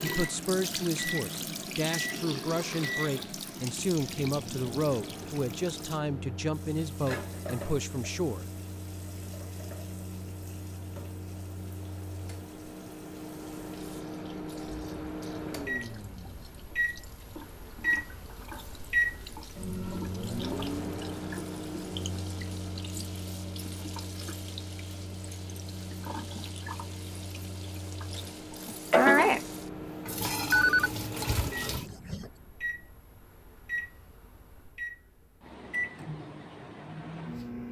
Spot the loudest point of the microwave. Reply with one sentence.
The volume of the microwave peaks at 19 seconds.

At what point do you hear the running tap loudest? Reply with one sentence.
The volume of the running tap peaks at 29 seconds.